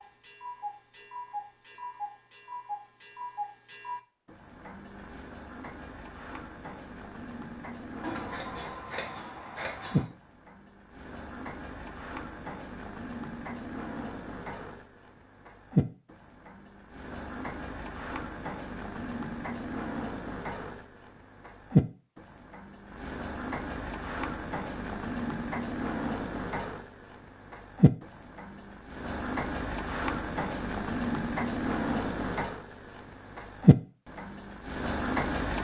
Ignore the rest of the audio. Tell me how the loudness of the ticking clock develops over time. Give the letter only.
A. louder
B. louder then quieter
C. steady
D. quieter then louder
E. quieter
A.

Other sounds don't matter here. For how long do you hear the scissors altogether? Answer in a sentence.
You can hear the scissors for 2 seconds altogether.